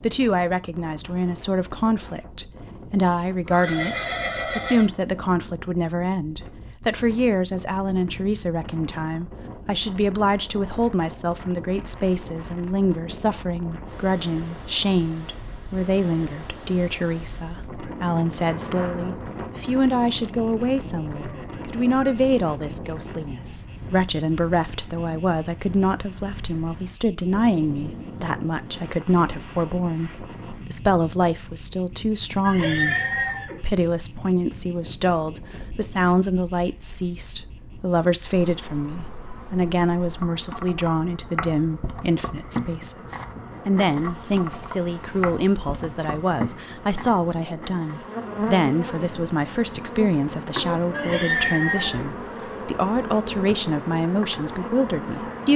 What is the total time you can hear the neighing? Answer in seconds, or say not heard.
4 s.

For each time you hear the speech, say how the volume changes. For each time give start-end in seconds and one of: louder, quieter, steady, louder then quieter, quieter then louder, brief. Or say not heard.
0.0-55.5 steady.